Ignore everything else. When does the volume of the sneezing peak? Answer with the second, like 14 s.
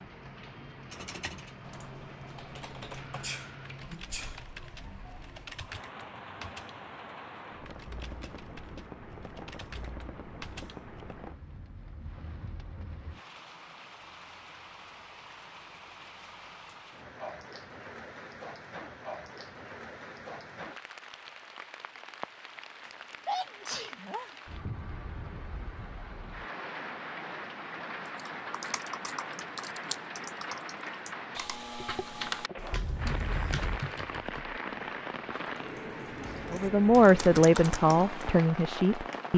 23 s.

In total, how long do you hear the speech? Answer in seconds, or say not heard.
3 s.